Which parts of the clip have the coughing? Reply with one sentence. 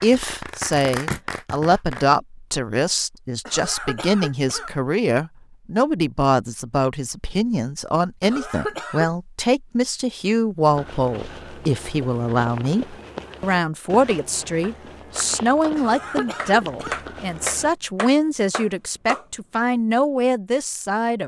The coughing can be heard from 3.5 to 4.8 s, from 8.2 to 9.1 s and from 15.8 to 17.1 s.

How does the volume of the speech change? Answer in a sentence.
The loudness of the speech stays about the same.